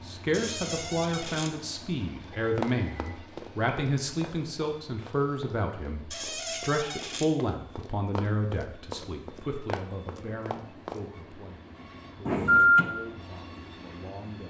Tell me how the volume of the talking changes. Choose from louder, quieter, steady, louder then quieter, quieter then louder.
quieter.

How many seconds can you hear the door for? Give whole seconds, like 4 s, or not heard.
3 s.